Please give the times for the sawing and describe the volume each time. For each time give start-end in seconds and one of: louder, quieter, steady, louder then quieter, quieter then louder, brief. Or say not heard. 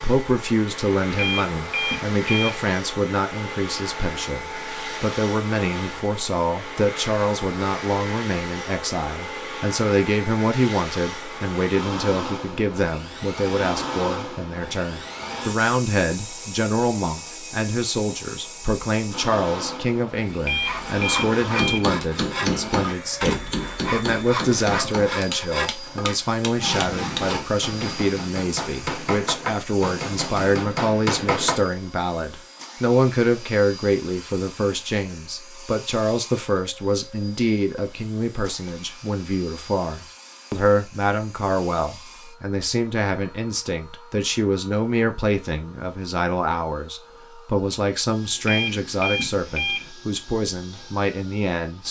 20.5-28.2 steady.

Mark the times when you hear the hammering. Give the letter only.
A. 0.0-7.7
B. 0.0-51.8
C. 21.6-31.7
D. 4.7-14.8
C.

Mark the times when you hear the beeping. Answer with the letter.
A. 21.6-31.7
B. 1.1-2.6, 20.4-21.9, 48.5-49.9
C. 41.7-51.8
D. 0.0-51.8
B.